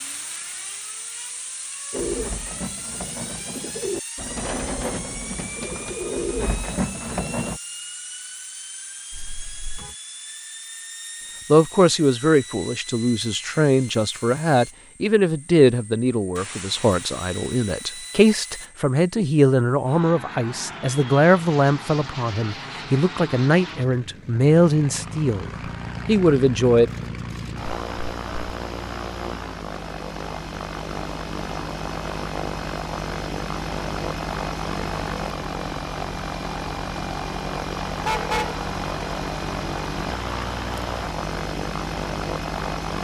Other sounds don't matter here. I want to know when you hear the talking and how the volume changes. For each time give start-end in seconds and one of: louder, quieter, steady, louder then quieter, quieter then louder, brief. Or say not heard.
11.5-26.9 steady.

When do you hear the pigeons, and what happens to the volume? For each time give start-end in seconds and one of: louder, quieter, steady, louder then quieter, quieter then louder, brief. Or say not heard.
1.9-7.6 louder.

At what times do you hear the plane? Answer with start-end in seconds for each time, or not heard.
0.0-42.9.